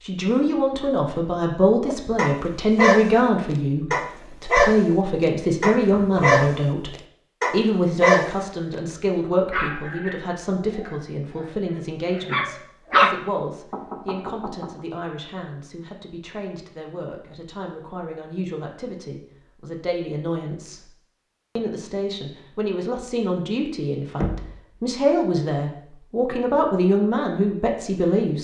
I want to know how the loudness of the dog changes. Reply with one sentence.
The loudness of the dog goes down.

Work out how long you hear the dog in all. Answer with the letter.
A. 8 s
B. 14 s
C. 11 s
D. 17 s
C.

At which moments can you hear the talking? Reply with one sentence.
The talking can be heard from 0.0 to 20.9 s and from 21.6 to 28.3 s.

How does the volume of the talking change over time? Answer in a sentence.
The volume of the talking goes down, then up.